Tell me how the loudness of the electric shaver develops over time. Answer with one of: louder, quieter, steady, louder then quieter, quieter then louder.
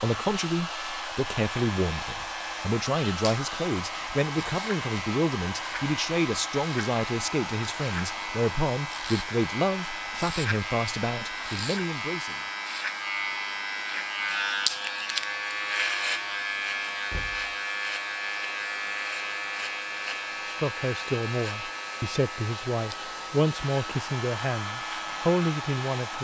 louder then quieter.